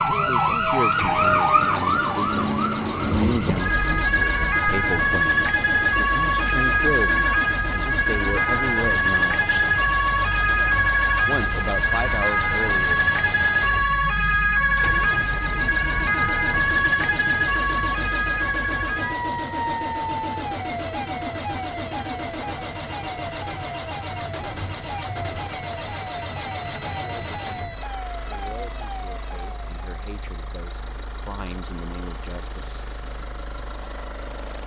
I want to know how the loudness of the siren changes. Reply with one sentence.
The loudness of the siren goes down.